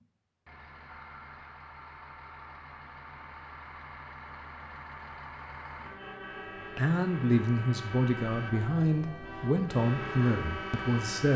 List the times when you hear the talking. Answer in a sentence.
The talking can be heard from 6.8 to 11.3 s.